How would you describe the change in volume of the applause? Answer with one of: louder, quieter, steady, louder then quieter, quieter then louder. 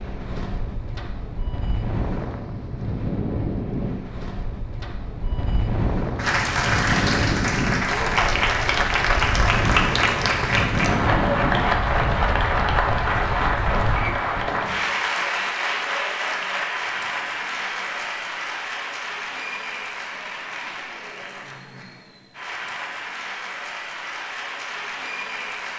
quieter.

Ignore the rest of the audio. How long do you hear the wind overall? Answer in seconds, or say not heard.
14 s.